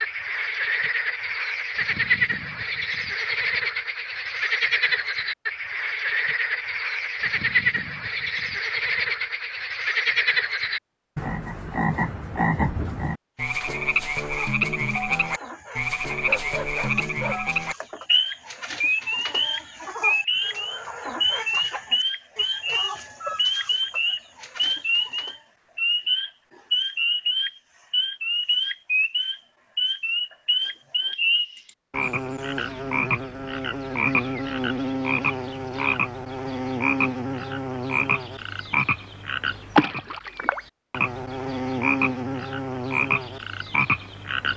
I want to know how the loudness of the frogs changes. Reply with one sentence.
The volume of the frogs stays about the same.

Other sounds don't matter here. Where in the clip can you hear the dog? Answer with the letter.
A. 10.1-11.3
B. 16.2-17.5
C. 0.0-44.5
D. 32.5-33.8
B.